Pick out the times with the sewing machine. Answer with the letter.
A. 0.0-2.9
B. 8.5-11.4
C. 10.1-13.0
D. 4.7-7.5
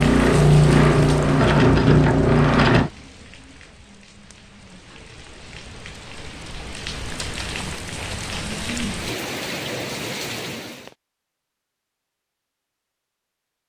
A.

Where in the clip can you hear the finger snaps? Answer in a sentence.
The finger snaps can't be heard in this clip.